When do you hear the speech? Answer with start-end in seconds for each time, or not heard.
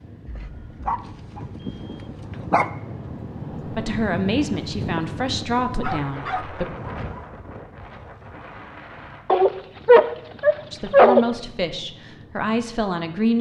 3.6-6.7, 10.7-13.3.